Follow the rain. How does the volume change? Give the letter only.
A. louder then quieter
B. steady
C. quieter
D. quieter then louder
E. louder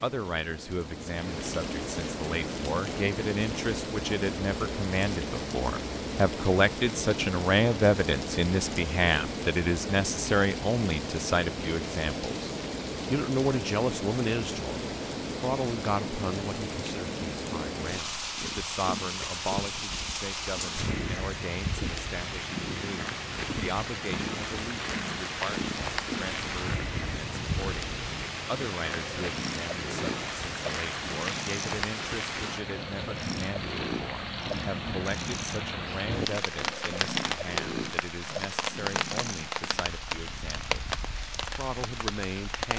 B.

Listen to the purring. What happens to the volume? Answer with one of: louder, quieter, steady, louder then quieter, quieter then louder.
steady.